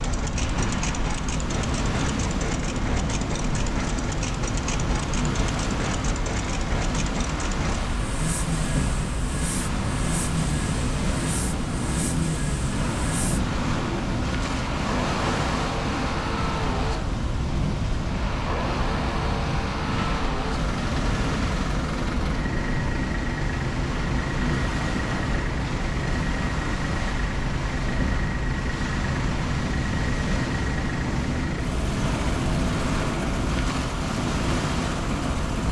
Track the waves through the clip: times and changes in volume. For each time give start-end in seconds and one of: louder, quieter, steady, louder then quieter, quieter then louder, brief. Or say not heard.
0.0-35.6 steady.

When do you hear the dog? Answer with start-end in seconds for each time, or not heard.
not heard.